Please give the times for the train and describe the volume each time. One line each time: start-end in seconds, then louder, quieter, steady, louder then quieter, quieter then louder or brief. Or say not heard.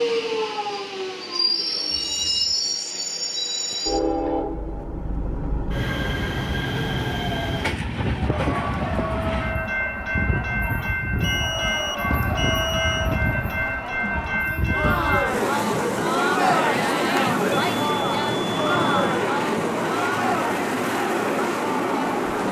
0.0-22.4 steady.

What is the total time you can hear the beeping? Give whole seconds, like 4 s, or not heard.
4 s.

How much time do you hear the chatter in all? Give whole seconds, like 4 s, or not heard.
14 s.